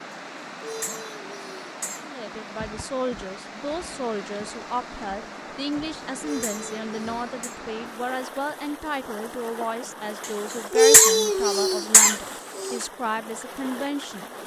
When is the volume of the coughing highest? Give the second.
11 s.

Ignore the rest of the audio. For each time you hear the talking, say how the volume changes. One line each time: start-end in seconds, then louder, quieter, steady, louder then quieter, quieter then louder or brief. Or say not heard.
2.0-14.3 steady.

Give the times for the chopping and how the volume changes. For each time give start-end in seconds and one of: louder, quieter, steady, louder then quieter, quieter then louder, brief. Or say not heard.
not heard.